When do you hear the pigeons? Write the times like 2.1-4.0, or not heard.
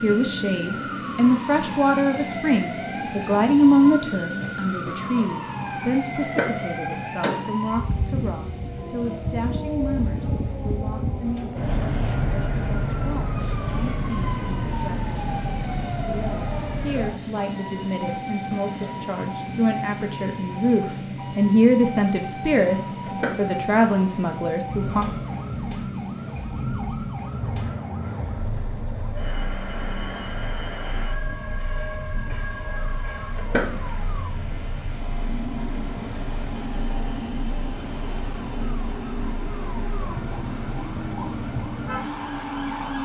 not heard.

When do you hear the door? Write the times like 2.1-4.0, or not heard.
6.2-7.5, 23.1-23.6, 33.4-33.9.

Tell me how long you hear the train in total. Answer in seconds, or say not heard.
43 s.